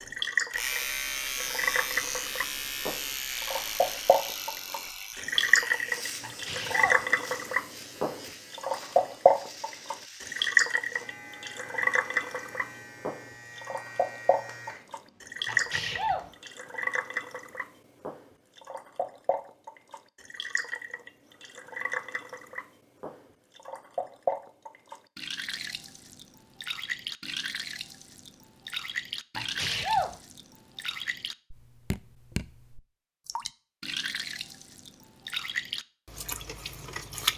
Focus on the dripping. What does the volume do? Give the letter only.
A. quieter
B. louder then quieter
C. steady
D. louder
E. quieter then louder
A.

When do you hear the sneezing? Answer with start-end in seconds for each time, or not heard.
6.2-7.0, 15.4-16.3, 29.4-30.1.